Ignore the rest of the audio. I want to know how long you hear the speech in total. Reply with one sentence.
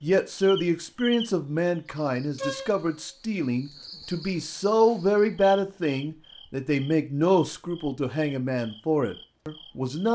You can hear the speech for 10 seconds altogether.